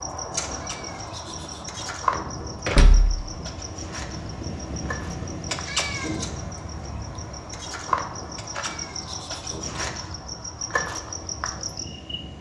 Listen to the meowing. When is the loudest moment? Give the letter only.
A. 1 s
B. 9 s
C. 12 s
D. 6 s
D.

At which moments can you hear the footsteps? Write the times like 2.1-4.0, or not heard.
not heard.